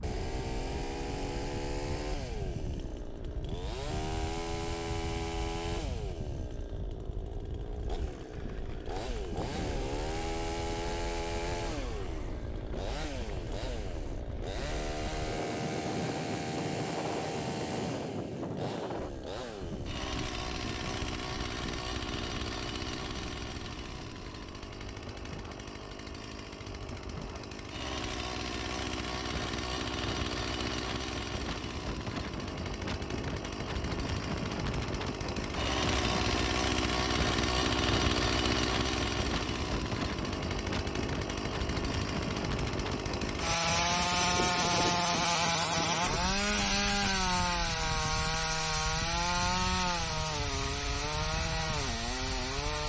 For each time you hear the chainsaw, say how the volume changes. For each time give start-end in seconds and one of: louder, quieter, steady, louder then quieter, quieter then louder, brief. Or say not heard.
0.0-52.8 louder.